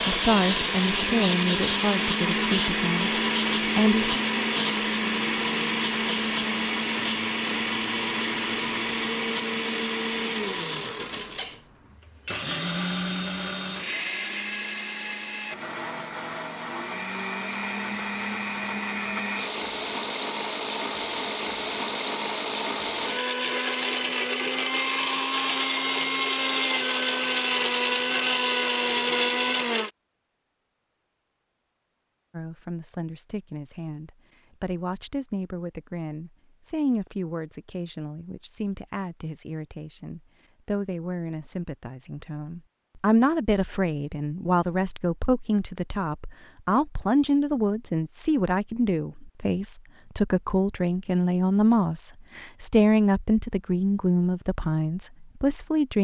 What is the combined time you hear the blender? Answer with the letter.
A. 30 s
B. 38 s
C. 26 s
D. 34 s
A.